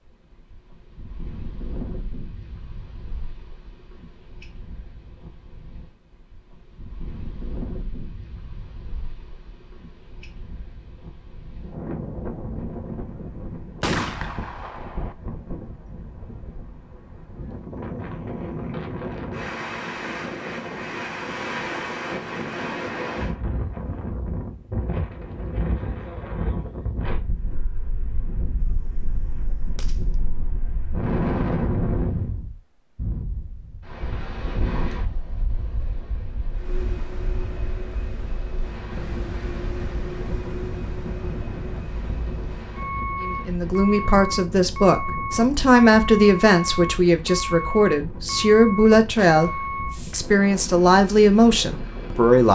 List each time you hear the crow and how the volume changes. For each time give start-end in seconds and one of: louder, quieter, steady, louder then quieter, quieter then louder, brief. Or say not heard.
not heard.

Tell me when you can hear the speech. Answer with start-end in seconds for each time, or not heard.
43.2-52.5.